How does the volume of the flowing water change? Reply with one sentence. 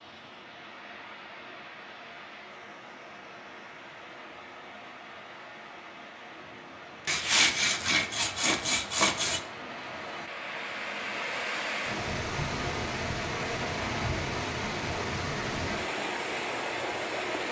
The loudness of the flowing water goes up.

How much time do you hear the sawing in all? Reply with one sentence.
You can hear the sawing for 2 seconds altogether.